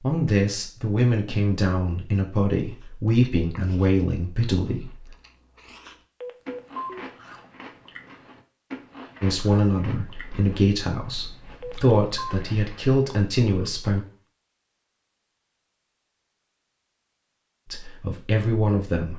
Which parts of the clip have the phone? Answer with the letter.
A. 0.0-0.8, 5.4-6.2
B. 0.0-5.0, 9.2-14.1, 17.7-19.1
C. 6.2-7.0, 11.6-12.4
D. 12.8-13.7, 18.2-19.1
C.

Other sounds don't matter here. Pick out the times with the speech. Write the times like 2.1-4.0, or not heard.
0.0-5.0, 9.2-14.1, 17.7-19.1.